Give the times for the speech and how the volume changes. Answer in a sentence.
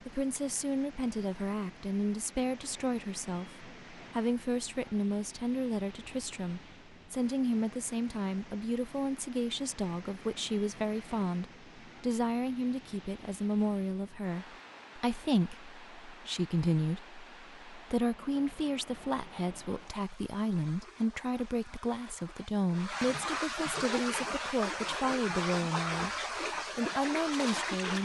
You can hear the speech from 0.1 to 28.0 s, at a steady volume.